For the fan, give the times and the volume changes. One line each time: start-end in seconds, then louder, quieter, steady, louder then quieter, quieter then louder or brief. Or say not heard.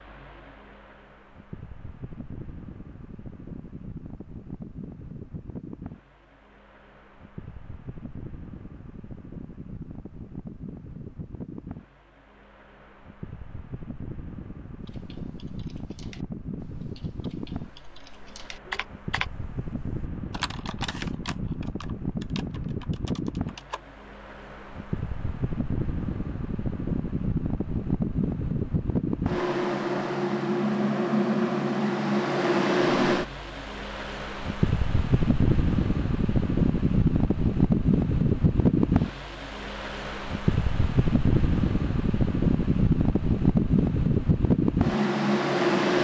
0.0-45.9 louder.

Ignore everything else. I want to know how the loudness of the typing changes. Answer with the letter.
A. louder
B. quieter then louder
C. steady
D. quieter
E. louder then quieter
E.